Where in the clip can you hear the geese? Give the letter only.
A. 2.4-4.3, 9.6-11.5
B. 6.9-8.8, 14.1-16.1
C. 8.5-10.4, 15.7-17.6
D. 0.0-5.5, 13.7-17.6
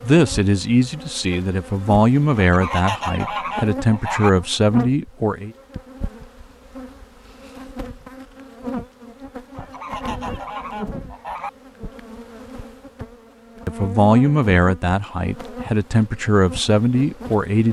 A.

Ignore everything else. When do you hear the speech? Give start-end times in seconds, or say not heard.
0.0-5.5, 13.7-17.6.